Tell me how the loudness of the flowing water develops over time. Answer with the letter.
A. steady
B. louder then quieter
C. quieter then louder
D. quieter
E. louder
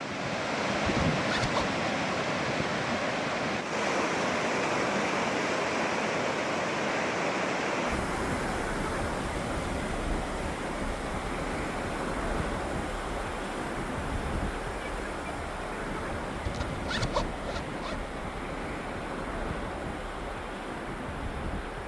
D.